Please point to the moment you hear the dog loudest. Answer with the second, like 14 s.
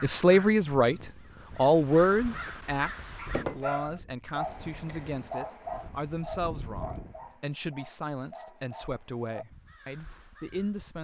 4 s.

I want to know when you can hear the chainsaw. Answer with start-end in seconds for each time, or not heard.
not heard.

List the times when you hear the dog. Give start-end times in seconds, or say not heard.
3.1-9.4.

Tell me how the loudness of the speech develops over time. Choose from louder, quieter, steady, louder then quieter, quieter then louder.
quieter.